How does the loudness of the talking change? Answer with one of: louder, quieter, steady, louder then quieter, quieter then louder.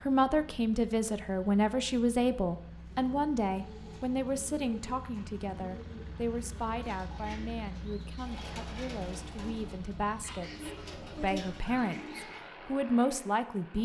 quieter then louder.